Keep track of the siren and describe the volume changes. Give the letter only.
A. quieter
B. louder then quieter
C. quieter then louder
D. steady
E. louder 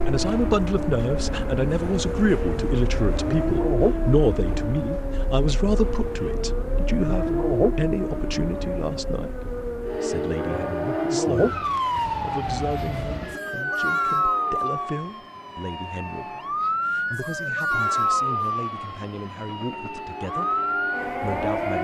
D.